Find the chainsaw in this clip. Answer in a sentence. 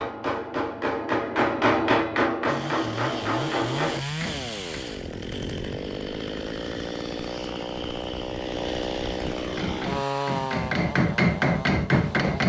The chainsaw can be heard from 2.5 to 12.4 s.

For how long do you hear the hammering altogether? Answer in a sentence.
The hammering can be heard for 8 seconds in total.